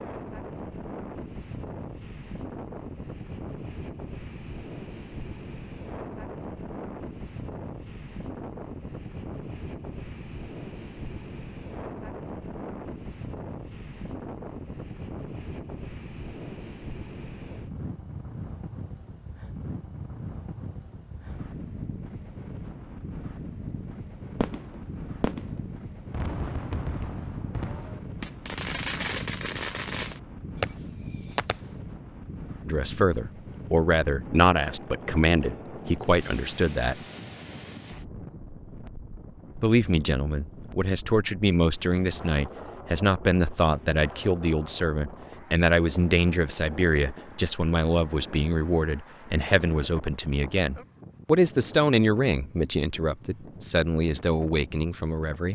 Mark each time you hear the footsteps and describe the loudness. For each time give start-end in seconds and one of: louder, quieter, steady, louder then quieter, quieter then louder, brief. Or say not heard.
not heard.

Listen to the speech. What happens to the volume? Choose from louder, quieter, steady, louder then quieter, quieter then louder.
steady.